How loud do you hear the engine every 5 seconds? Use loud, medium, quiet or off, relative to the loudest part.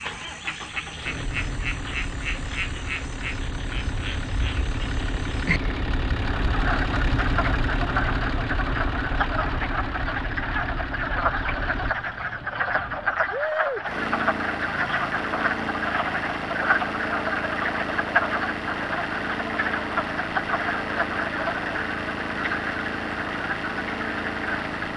medium, loud, loud, loud, loud.